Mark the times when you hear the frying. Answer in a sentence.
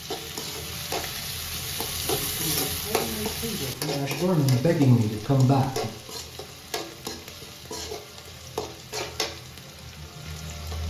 You can hear the frying from 0.0 to 10.8 s.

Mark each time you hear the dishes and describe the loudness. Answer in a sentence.
You can't hear the dishes here.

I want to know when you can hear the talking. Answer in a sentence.
You can hear the talking from 1.9 to 5.9 s.